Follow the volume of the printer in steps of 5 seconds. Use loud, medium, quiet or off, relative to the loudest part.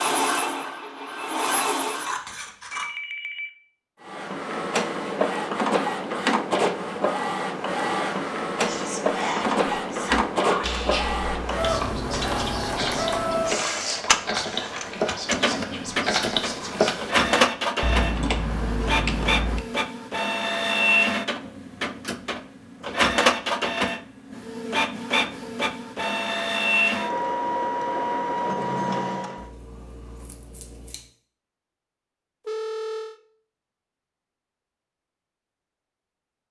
loud, loud, loud, loud, loud, loud, off, off.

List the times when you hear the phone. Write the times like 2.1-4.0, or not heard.
2.7-3.5, 32.5-33.2.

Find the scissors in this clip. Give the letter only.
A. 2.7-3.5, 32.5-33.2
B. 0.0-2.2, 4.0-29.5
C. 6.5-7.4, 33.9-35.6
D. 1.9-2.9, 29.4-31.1
D.